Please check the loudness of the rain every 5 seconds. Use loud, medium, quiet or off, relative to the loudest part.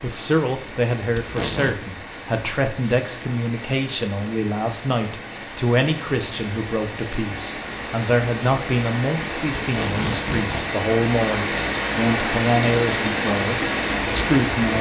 quiet, medium, loud.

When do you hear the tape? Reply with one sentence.
You can hear the tape from 1.1 to 1.8 s and from 9.6 to 10.7 s.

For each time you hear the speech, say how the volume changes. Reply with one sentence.
You can hear the speech from 0.0 to 14.7 s, at a steady volume.